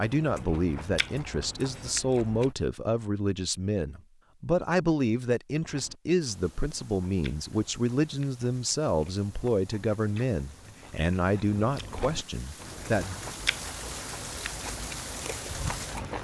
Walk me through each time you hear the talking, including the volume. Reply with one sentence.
You can hear the talking from 0.0 to 13.2 s, at a steady volume.